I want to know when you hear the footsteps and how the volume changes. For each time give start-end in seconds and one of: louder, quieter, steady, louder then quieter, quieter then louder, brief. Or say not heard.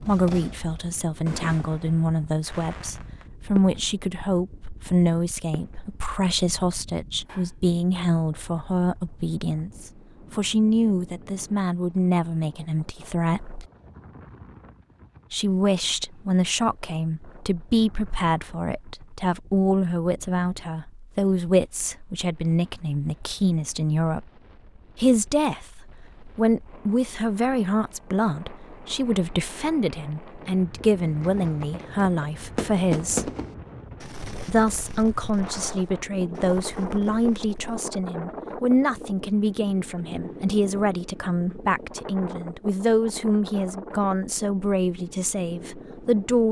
not heard.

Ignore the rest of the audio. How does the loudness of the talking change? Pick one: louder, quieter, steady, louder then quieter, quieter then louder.
steady.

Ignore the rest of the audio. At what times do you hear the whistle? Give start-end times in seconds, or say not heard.
not heard.